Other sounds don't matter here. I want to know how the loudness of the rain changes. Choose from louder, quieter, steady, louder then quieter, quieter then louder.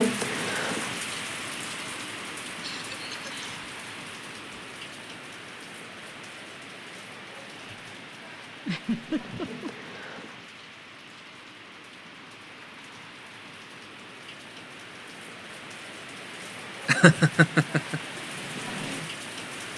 quieter then louder.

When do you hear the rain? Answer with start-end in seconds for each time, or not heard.
0.0-19.7.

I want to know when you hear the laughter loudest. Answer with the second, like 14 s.
17 s.